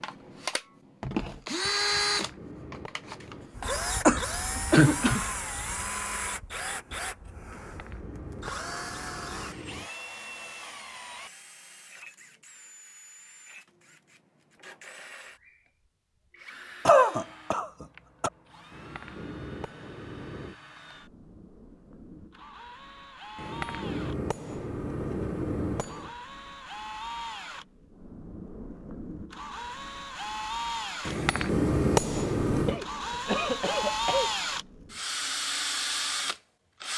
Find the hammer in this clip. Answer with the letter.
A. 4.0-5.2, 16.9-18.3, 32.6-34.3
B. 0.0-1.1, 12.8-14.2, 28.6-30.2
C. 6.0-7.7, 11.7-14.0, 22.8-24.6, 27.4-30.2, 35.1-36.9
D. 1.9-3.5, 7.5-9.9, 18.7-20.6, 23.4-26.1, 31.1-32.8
D.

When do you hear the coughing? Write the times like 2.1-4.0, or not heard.
4.0-5.2, 16.9-18.3, 32.6-34.3.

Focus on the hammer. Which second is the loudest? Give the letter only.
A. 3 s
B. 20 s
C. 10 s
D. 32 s
D.